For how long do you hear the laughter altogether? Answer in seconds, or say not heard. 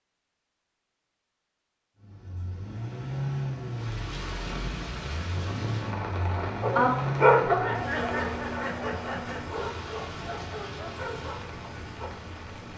2 s.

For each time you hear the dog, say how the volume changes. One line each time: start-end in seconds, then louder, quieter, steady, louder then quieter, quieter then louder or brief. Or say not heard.
6.6-12.1 quieter.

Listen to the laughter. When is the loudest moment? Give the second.
8 s.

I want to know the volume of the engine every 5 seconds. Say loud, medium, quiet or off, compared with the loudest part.
loud, loud, medium.